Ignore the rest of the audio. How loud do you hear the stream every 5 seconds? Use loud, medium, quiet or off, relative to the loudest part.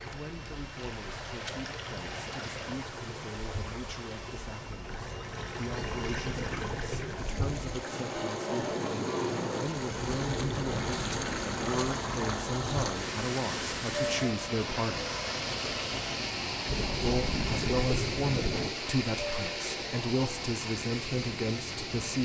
medium, medium, loud, loud, loud.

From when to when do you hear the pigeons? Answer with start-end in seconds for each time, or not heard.
5.7-7.7, 16.6-18.7.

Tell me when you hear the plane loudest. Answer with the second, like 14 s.
9 s.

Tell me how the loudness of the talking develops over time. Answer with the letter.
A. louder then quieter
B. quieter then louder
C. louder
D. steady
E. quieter
C.